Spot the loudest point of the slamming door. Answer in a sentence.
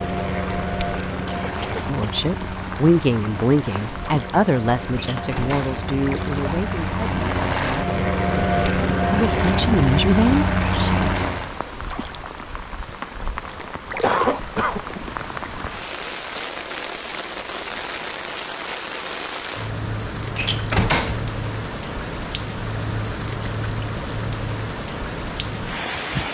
The volume of the slamming door peaks at 21 seconds.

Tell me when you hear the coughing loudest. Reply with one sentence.
The volume of the coughing peaks at 14 seconds.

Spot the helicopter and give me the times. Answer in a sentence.
You can hear the helicopter from 0.0 to 11.6 s.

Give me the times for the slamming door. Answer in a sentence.
The slamming door can be heard from 5.0 to 5.8 s, from 10.8 to 11.4 s and from 20.4 to 21.3 s.